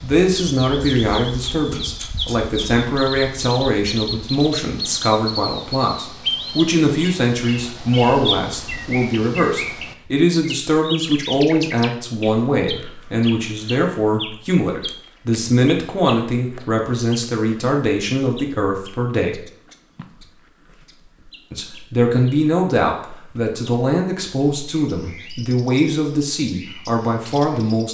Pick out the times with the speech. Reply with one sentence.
You can hear the speech from 0.0 to 19.4 s and from 21.5 to 27.8 s.